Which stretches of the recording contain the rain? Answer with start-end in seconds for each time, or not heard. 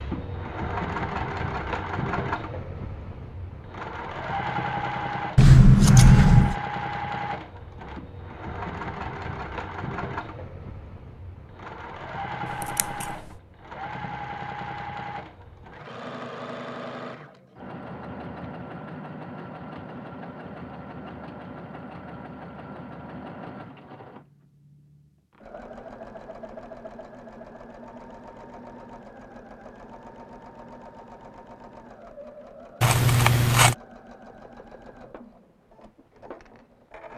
not heard.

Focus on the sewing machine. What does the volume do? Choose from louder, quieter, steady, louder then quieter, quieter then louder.
quieter.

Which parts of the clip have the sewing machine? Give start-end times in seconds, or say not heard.
0.0-37.1.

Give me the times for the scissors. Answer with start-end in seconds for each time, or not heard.
5.3-6.5, 12.6-13.1, 32.8-33.8.